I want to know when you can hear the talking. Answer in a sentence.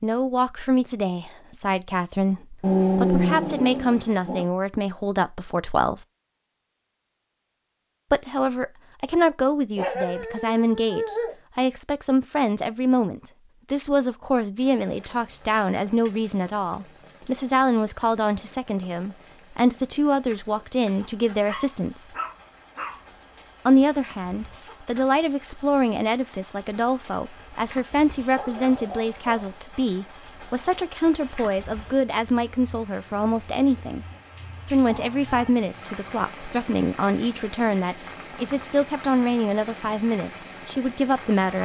You can hear the talking from 0.0 to 6.0 s, from 8.1 to 22.1 s, from 23.6 to 34.0 s and from 34.6 to 41.6 s.